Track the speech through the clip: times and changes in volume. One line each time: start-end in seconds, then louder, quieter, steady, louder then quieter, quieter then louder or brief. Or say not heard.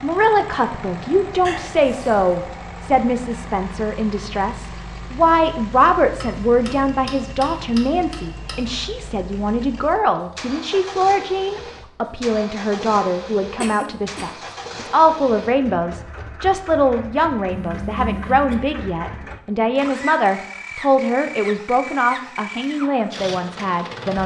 0.0-24.2 steady.